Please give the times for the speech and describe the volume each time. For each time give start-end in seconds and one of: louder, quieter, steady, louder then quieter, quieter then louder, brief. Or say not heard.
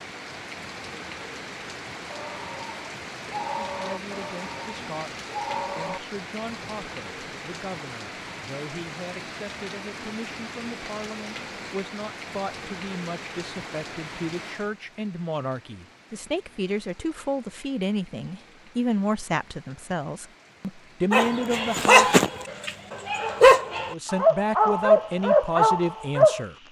3.6-22.1 louder
23.9-26.6 brief.